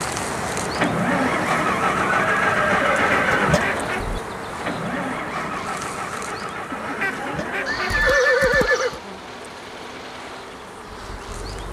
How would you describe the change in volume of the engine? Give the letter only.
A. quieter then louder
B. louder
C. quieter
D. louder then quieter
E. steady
C.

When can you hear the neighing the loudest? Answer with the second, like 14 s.
8 s.